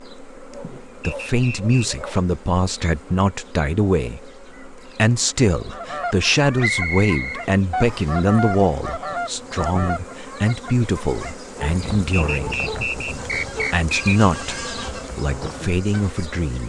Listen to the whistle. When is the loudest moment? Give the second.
7 s.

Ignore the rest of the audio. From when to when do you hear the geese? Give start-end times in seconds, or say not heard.
5.7-16.2.